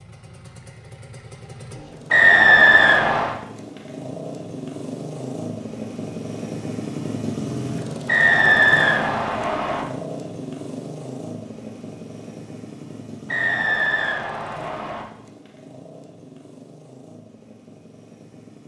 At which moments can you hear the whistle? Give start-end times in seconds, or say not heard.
2.1-3.4, 8.1-9.8, 13.2-15.1.